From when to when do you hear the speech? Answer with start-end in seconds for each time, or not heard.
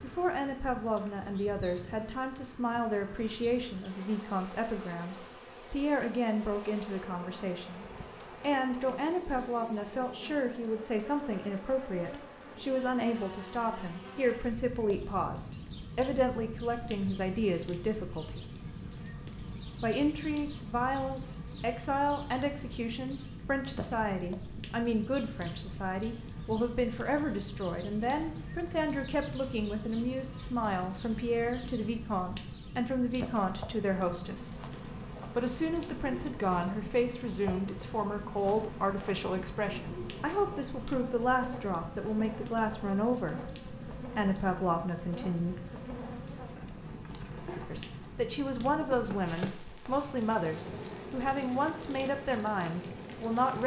0.0-18.5, 19.8-34.6, 35.4-45.6, 47.7-53.6.